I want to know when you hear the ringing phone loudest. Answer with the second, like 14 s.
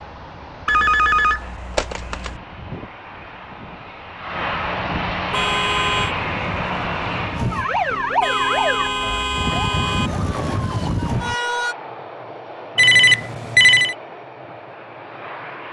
13 s.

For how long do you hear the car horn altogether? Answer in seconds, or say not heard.
3 s.